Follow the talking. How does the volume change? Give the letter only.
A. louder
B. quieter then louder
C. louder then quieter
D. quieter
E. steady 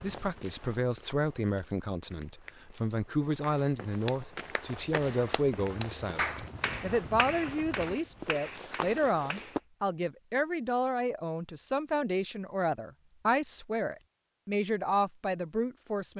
E.